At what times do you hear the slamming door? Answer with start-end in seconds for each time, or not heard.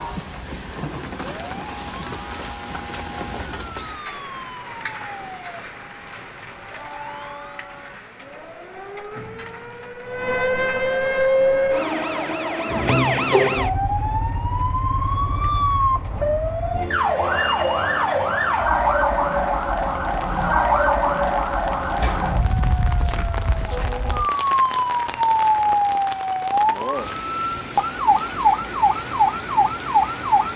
21.9-22.4.